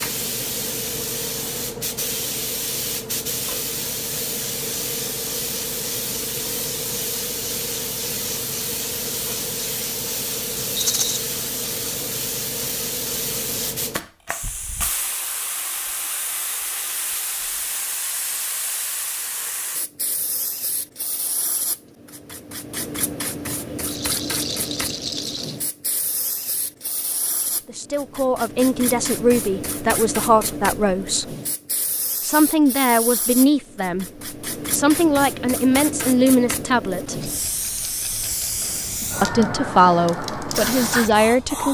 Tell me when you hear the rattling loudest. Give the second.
11 s.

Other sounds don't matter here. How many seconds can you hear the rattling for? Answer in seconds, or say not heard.
4 s.